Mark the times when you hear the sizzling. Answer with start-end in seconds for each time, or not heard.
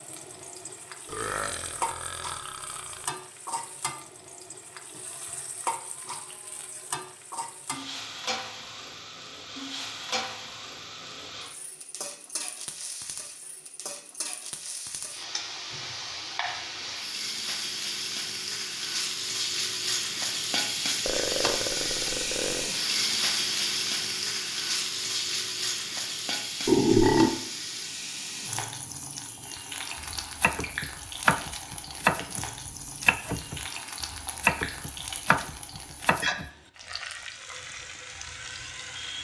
0.0-39.1.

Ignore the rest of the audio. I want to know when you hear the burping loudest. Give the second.
27 s.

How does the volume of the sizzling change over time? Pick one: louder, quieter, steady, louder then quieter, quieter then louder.
louder then quieter.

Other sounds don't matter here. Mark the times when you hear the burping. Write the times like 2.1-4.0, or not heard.
1.1-3.0, 21.1-22.7, 26.6-27.4.